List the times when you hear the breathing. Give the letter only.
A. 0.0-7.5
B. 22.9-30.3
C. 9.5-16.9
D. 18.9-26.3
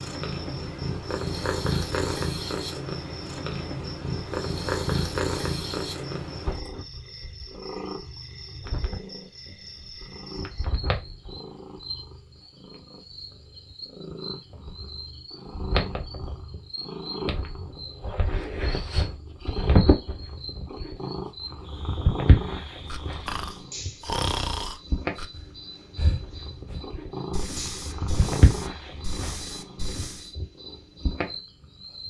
B.